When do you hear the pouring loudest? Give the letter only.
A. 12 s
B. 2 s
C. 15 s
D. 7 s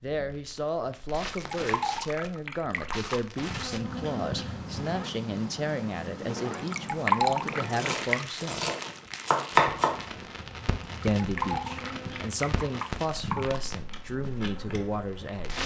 D.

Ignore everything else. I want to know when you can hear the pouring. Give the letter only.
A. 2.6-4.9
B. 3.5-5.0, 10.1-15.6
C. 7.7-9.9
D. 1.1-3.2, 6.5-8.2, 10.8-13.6
D.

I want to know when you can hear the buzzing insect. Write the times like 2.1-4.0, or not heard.
3.5-5.0, 10.1-15.6.